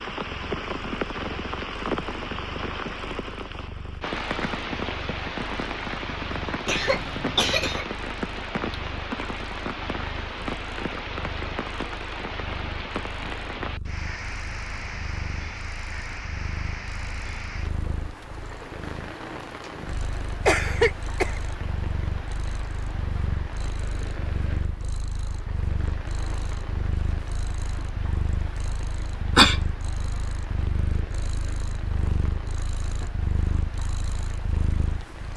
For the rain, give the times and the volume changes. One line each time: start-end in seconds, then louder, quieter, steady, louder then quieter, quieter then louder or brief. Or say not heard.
0.0-35.3 quieter.